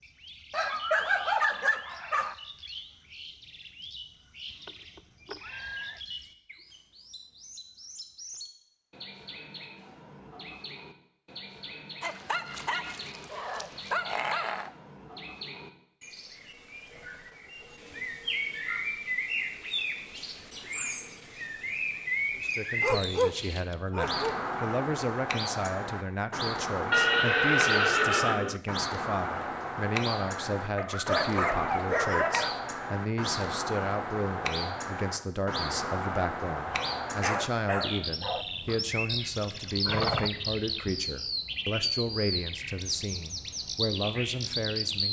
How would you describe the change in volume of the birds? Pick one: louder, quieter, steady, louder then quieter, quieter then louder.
louder.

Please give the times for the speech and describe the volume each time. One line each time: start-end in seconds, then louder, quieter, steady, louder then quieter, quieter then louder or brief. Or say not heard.
22.4-45.0 steady.